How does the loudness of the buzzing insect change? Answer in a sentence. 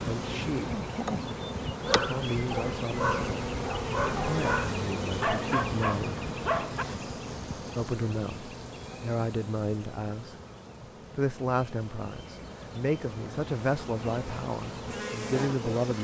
The volume of the buzzing insect goes down, then up.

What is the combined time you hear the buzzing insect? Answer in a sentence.
You can hear the buzzing insect for 16 seconds altogether.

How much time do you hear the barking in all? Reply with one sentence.
You can hear the barking for 5 seconds altogether.